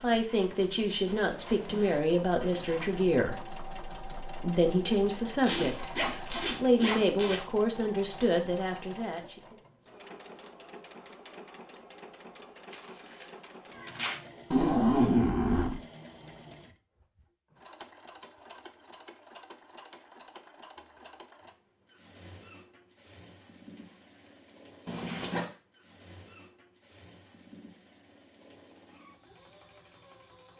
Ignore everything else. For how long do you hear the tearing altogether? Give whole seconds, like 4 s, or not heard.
4 s.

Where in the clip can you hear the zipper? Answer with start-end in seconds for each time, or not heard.
5.3-7.3, 14.5-15.8, 24.9-25.4.